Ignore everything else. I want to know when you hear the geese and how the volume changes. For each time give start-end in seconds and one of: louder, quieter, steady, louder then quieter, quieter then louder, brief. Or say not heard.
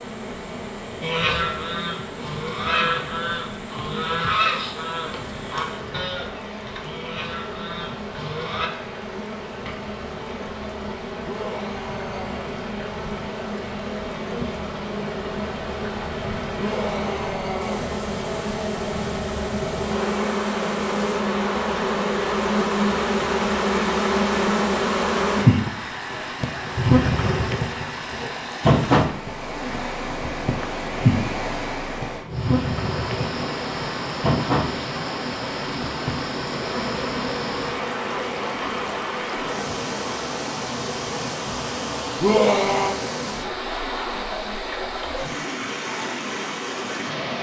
1.0-8.7 quieter.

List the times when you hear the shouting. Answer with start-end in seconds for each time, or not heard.
11.2-12.5, 16.6-17.9, 42.2-43.0.